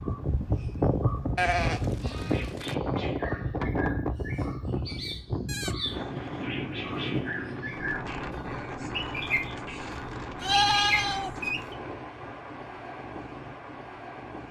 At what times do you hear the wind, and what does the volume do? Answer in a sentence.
You can hear the wind from 0.0 to 14.4 s, getting quieter.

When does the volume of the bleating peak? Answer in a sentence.
The volume of the bleating peaks at 11 seconds.